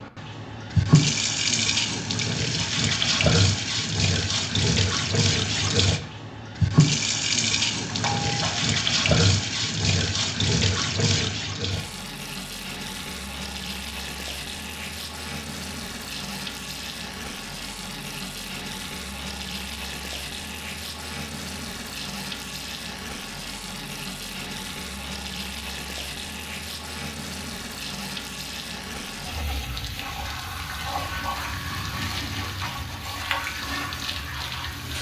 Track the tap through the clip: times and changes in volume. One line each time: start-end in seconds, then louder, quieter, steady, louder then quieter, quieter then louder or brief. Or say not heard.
0.0-34.9 quieter.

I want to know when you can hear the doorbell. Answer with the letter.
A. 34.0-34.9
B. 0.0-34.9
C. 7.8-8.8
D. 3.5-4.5
C.